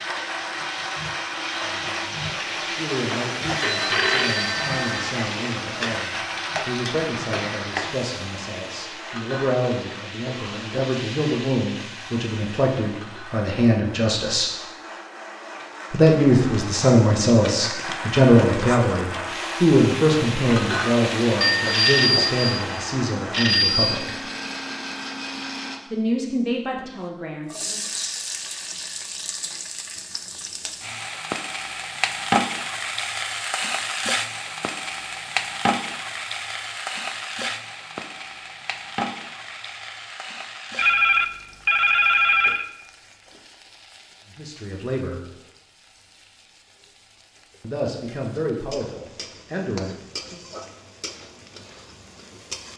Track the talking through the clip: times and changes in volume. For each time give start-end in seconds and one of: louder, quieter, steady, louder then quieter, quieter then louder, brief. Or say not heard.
1.6-14.5 louder
15.9-24.1 quieter
25.9-27.8 brief
44.3-45.2 brief
47.6-50.4 brief.